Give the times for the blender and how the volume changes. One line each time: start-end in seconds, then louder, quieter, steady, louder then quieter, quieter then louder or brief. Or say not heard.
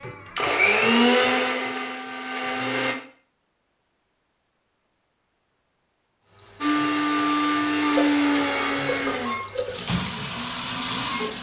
0.0-3.0 brief
6.6-11.3 quieter.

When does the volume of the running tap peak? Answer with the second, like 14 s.
10 s.